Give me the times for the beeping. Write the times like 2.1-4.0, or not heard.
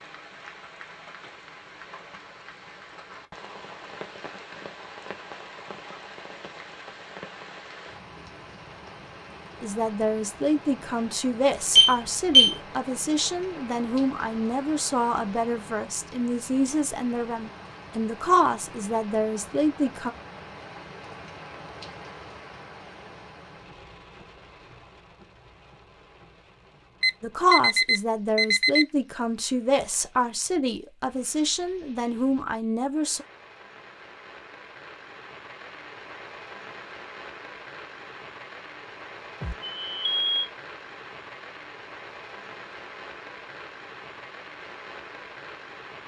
11.8-12.6, 27.0-28.9, 39.4-40.5.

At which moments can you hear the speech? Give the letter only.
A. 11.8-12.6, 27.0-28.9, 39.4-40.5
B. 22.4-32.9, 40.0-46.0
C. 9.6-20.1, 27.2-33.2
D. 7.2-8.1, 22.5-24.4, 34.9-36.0
C.